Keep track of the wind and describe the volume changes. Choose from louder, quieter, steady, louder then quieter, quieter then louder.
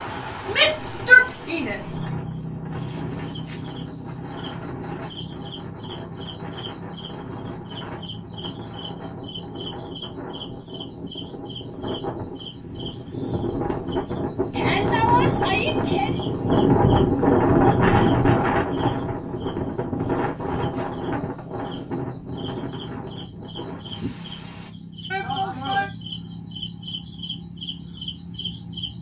louder then quieter.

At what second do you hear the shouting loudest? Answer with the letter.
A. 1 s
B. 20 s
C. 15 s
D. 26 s
A.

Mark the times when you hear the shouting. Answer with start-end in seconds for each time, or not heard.
0.5-1.9, 14.5-16.1, 25.1-25.9.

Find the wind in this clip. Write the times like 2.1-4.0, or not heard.
0.0-24.7.